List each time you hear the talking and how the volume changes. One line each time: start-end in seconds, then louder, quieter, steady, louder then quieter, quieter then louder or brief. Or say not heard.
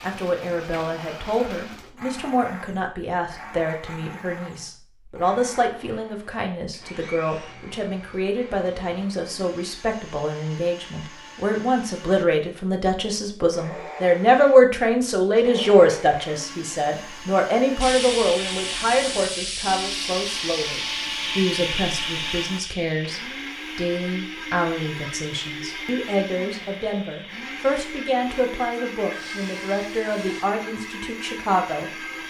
0.0-32.2 louder then quieter.